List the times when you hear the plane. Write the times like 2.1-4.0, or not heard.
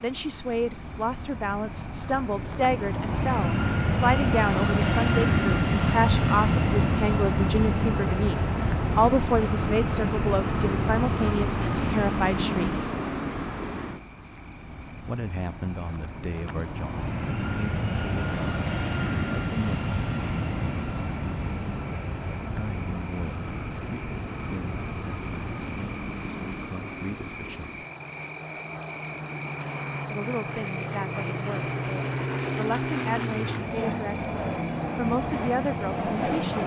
0.0-36.6.